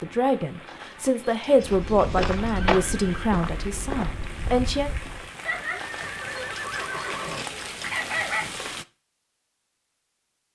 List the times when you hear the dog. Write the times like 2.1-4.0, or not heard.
0.7-2.8, 5.8-8.4.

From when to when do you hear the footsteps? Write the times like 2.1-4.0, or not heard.
1.6-5.3.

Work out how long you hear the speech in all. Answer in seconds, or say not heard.
5 s.